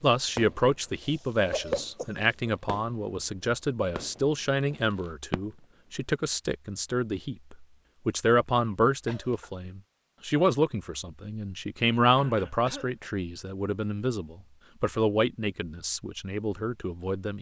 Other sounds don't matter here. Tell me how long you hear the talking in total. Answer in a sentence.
The talking can be heard for 17 seconds in total.